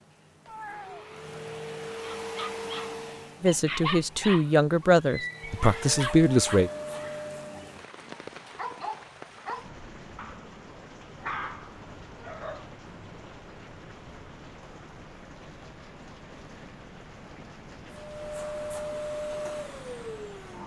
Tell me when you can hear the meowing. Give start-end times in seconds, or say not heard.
0.5-1.1.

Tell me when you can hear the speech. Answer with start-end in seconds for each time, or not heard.
3.4-6.7.